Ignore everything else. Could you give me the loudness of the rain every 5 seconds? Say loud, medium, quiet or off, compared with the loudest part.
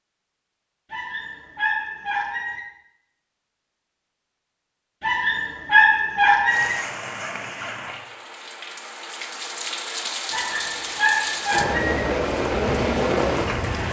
off, medium, loud.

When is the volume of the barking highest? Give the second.
6 s.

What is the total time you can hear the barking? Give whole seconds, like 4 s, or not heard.
5 s.